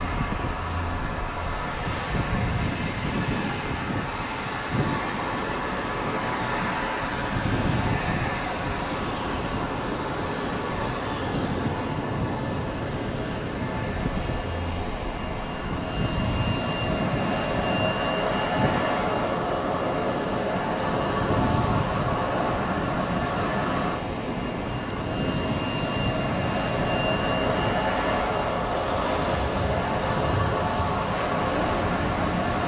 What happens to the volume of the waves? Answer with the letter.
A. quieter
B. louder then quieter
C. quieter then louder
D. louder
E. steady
E.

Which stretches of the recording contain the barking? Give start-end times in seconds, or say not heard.
not heard.